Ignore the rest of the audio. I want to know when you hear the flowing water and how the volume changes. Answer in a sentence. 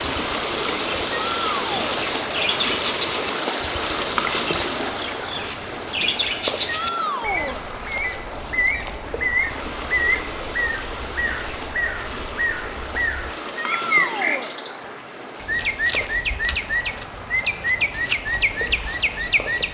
The flowing water can be heard from 0.0 to 19.7 s, getting quieter.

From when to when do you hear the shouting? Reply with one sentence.
You can hear the shouting from 1.1 to 2.0 s, from 6.7 to 7.7 s and from 13.6 to 14.5 s.